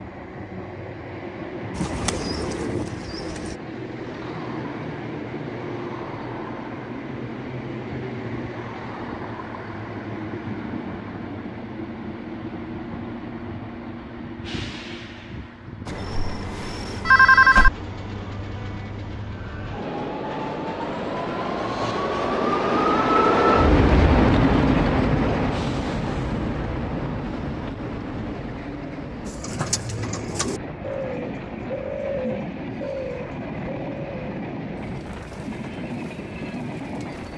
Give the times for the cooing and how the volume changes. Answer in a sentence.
You can hear the cooing briefly from 1.7 to 3.5 s; and from 29.2 to 37.3 s, getting quieter.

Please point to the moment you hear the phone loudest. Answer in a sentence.
The loudest moment of the phone is at 17 seconds.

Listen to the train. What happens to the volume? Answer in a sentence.
The loudness of the train goes up, then down.